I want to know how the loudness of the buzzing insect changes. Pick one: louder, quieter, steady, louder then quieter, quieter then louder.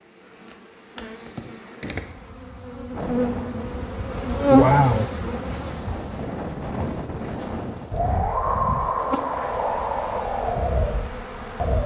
louder then quieter.